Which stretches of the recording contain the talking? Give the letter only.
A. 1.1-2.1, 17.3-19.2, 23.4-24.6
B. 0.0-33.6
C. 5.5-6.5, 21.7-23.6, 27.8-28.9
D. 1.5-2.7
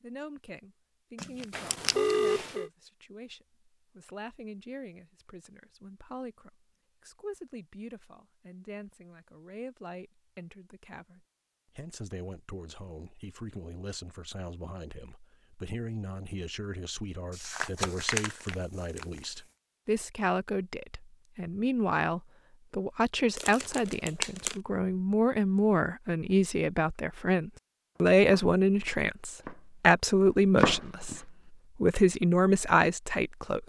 B.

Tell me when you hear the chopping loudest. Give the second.
31 s.